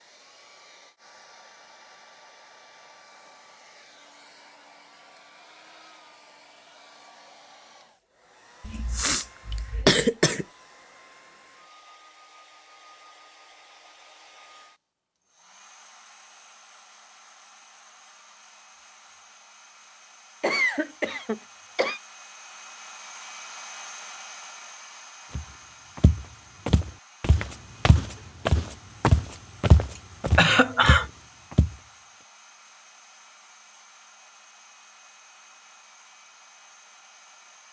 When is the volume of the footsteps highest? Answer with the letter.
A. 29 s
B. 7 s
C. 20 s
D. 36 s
A.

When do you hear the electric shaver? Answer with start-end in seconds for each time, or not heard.
not heard.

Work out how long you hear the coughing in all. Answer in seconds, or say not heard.
4 s.